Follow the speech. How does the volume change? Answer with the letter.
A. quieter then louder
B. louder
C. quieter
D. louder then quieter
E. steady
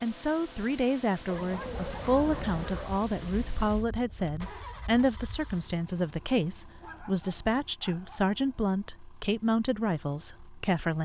E.